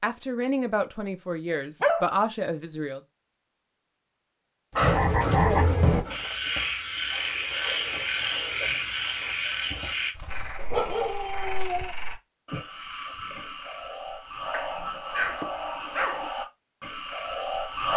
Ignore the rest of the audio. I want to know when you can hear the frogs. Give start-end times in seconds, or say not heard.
4.8-17.9.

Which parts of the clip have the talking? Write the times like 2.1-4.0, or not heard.
0.0-3.0.